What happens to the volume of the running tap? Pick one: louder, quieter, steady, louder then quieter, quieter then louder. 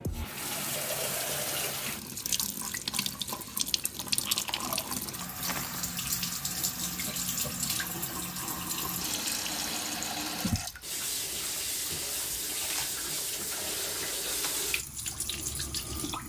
steady.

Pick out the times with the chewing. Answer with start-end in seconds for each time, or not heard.
3.9-6.0.